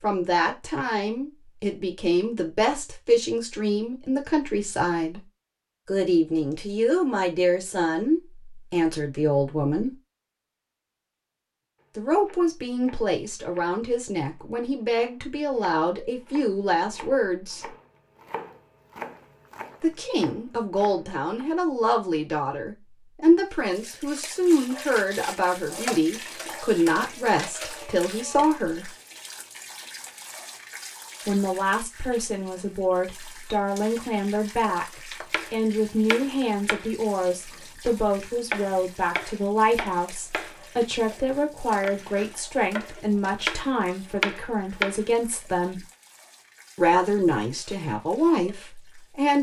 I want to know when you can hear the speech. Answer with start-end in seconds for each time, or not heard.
0.0-5.2, 5.8-9.9, 11.9-17.7, 19.8-28.9, 31.2-45.8, 46.8-49.3.